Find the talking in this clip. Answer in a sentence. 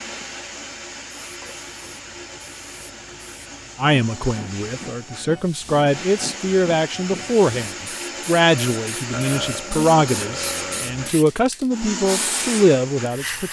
You can hear the talking from 3.8 to 13.4 s.